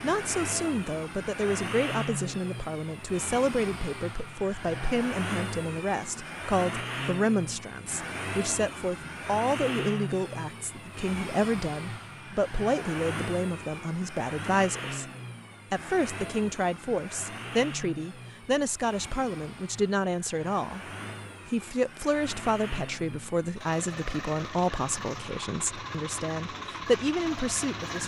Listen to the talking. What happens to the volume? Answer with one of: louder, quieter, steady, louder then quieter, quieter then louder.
steady.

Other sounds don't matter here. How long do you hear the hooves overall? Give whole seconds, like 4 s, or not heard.
not heard.